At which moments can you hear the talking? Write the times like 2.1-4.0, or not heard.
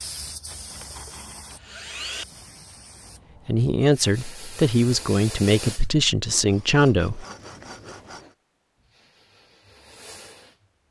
3.5-7.2.